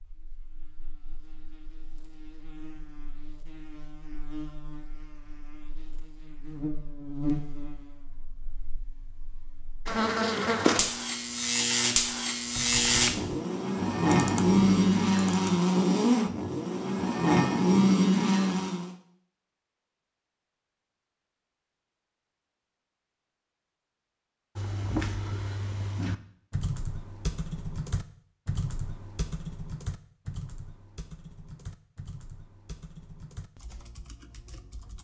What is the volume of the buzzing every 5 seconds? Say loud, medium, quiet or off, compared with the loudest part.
quiet, quiet, loud, loud, off, off, off.